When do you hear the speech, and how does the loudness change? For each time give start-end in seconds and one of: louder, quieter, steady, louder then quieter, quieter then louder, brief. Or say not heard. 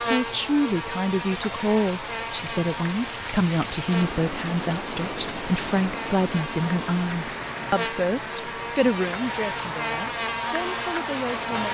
0.1-11.6 quieter.